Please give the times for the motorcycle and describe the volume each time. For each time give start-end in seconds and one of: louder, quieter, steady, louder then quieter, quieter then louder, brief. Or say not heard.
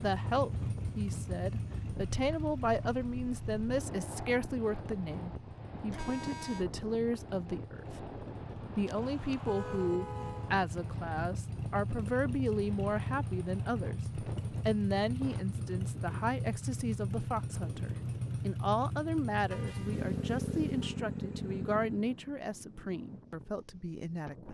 0.0-22.1 quieter then louder.